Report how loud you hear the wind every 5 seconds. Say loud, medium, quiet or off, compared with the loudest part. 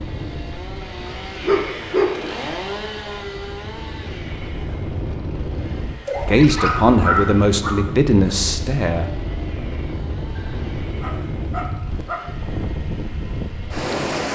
medium, loud, loud.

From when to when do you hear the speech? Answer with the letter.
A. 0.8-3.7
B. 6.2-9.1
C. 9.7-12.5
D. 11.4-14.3
B.